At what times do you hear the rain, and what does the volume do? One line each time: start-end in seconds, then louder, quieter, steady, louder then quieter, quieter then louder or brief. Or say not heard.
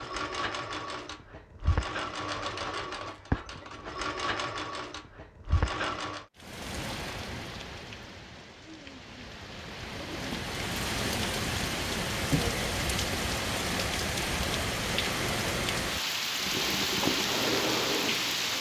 6.3-18.5 louder.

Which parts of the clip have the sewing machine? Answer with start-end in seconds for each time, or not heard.
0.0-6.2, 16.4-18.5.